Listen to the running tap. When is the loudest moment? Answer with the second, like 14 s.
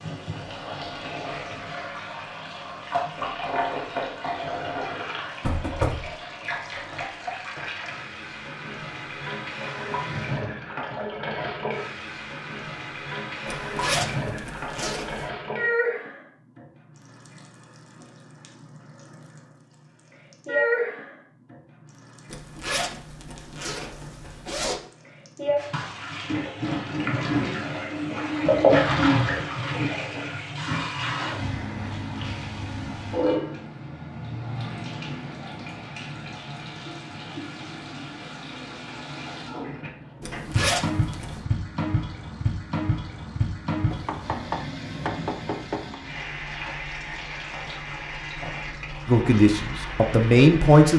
29 s.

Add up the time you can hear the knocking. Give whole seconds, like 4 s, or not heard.
3 s.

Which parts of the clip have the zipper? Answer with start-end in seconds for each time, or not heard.
13.4-15.3, 22.3-24.8, 40.2-41.4.